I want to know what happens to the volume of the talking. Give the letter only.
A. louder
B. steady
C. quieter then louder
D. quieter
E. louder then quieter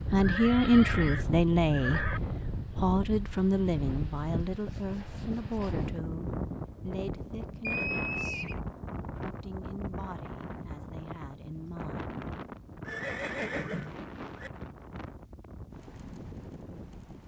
D.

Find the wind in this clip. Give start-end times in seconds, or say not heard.
0.0-17.2.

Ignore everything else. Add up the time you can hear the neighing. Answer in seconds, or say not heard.
5 s.